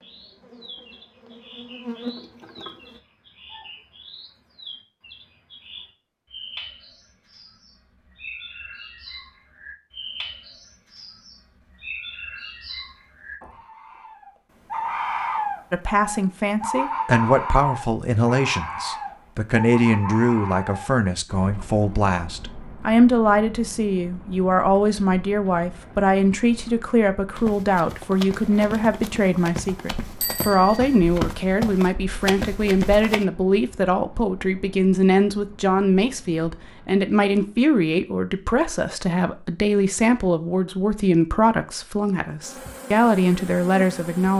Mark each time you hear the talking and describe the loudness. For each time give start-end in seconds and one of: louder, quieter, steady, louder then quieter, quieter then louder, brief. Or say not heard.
15.7-44.3 steady.